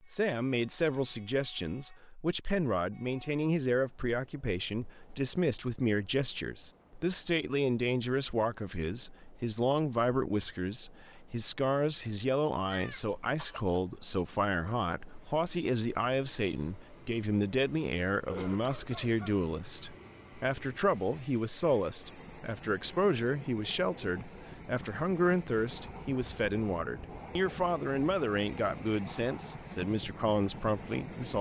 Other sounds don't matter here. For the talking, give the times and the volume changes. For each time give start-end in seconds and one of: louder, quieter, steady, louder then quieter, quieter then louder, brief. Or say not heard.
0.0-31.3 steady.